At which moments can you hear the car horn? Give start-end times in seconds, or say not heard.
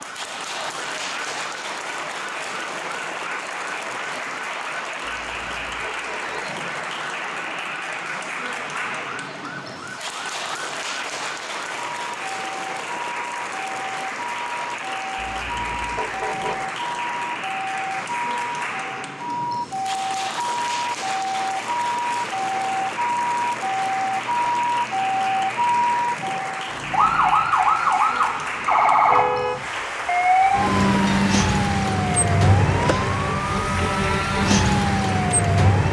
5.1-6.5, 15.2-16.6, 29.1-29.6.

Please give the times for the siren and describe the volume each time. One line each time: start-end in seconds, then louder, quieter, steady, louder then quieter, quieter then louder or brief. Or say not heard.
0.0-35.8 louder.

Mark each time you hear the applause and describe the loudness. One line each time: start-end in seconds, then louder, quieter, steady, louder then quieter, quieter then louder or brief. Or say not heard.
0.0-35.8 steady.